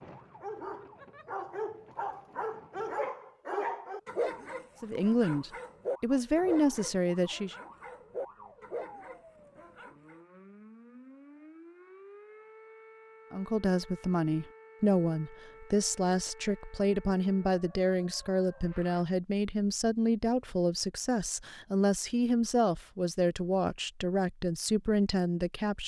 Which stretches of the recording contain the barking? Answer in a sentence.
You can hear the barking from 0.4 to 10.2 s.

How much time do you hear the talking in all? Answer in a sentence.
The talking can be heard for 15 seconds in total.